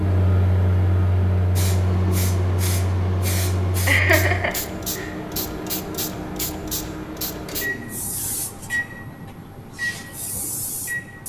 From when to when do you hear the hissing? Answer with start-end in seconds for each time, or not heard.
1.6-11.2.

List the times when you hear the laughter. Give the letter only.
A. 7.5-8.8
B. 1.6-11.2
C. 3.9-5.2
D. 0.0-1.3
C.